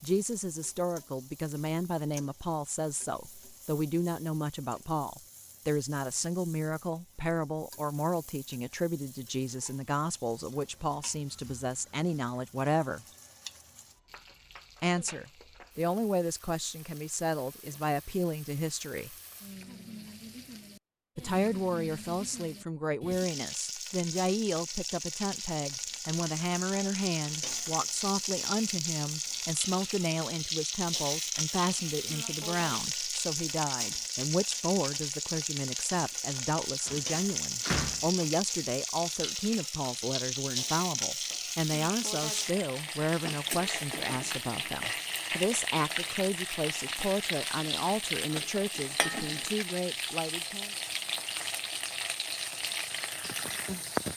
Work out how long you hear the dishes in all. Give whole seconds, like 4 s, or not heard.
not heard.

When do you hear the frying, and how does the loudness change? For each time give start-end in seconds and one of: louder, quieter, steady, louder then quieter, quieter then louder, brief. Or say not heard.
0.0-54.1 louder.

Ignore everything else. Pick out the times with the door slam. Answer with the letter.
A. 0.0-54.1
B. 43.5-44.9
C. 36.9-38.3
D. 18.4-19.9
C.